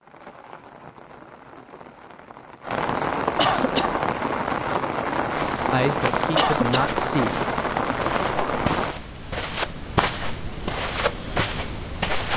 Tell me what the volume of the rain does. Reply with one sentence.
The loudness of the rain goes up.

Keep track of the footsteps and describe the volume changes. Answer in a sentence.
The loudness of the footsteps goes up.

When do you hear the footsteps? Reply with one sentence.
You can hear the footsteps from 5.3 to 12.3 s.